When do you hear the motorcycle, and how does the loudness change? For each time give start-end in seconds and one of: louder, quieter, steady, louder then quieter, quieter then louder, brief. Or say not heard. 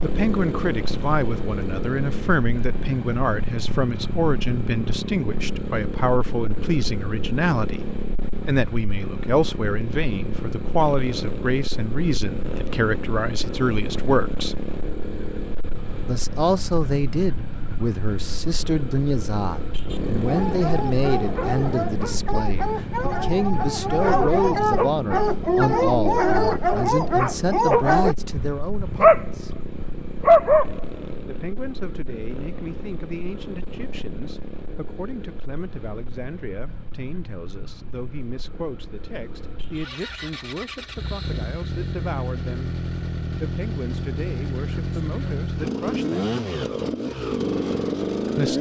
0.0-48.5 quieter then louder.